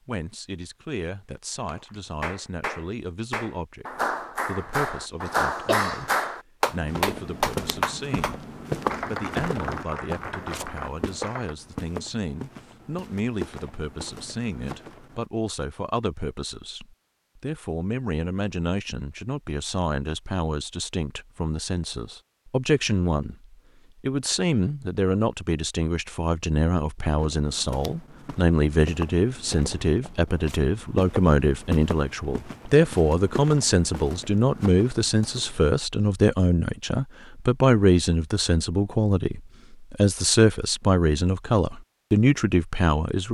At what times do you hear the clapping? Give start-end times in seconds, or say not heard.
1.6-11.6.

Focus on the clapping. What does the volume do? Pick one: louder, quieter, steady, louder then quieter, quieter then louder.
louder then quieter.